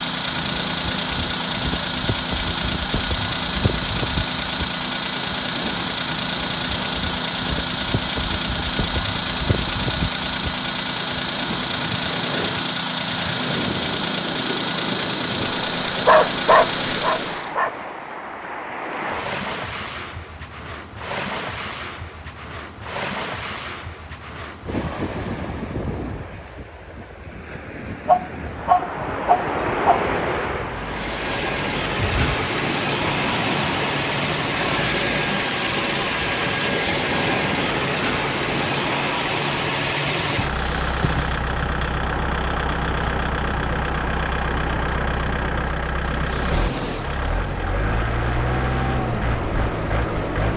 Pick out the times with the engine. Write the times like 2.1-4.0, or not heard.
0.0-17.6, 30.7-50.5.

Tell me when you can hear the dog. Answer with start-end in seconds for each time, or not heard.
16.1-17.7, 28.1-30.0.